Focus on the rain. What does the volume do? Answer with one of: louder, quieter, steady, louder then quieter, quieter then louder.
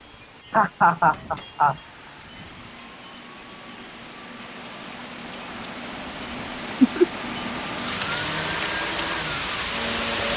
louder.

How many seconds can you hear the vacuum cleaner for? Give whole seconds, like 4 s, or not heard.
10 s.